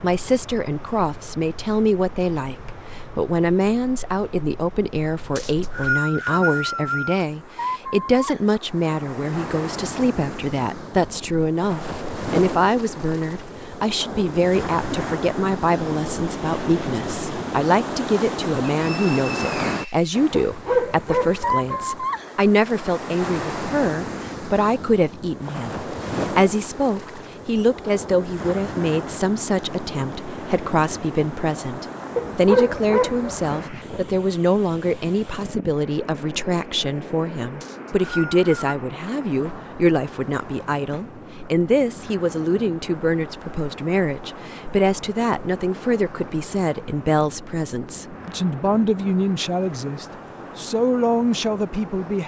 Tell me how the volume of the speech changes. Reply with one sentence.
The volume of the speech stays about the same.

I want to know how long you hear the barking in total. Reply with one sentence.
You can hear the barking for 3 seconds altogether.